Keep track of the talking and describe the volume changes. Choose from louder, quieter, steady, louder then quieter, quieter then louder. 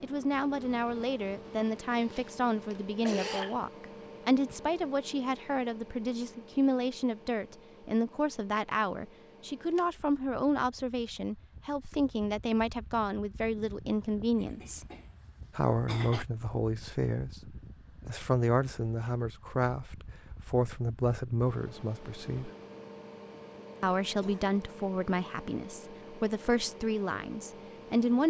steady.